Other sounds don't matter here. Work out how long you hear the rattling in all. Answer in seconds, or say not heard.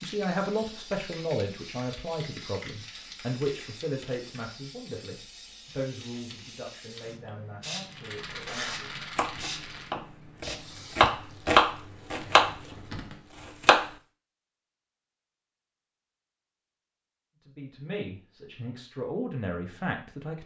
2 s.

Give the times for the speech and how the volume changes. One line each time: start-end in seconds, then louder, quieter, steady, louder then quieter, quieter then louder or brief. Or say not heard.
0.0-8.8 quieter
17.4-20.4 brief.